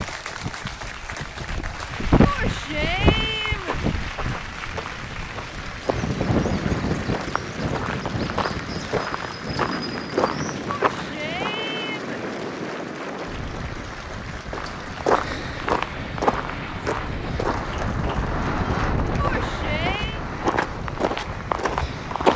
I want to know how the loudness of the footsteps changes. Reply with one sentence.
The loudness of the footsteps goes up.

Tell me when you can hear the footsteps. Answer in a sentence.
You can hear the footsteps from 2.8 to 11.7 s and from 14.5 to 22.3 s.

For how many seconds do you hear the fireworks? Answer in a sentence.
The fireworks can't be heard in this clip.